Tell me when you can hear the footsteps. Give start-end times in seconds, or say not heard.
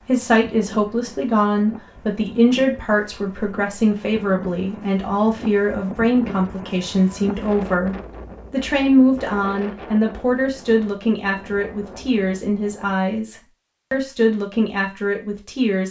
not heard.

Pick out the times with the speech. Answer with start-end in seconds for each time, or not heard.
0.1-15.8.